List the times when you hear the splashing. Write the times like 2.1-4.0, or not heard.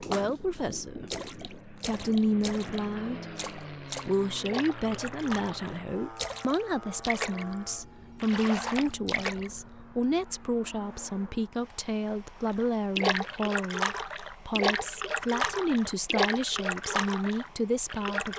0.0-7.5, 8.2-9.5, 12.4-18.3.